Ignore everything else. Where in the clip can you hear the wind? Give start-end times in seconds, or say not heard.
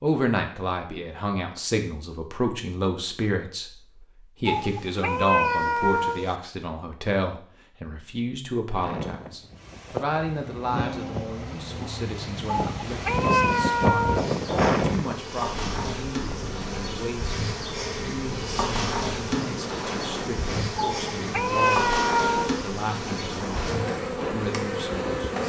8.7-25.4.